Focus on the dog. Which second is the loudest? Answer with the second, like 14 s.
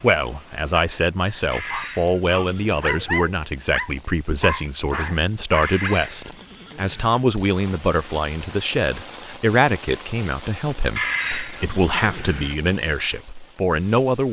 3 s.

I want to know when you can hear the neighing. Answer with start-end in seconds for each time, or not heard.
1.5-2.9, 5.6-7.2, 10.9-12.6.